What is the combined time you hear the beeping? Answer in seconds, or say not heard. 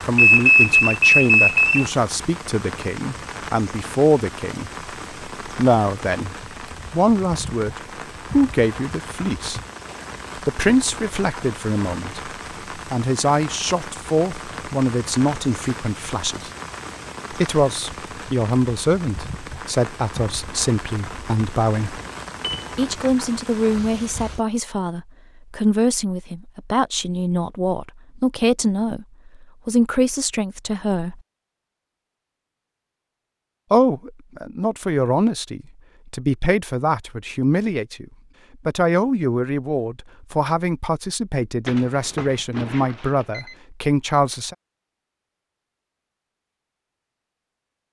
5 s.